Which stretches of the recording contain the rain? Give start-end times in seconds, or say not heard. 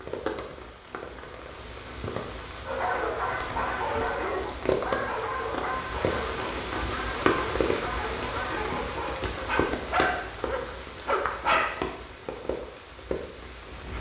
0.0-13.9.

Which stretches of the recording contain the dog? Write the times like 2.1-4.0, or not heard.
2.6-11.8.